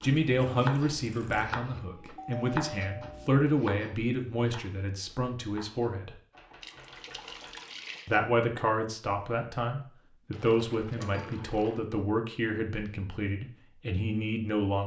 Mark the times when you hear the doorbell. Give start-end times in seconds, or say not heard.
2.1-3.3, 11.0-11.4.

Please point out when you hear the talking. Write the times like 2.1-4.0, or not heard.
0.0-6.2, 8.1-14.8.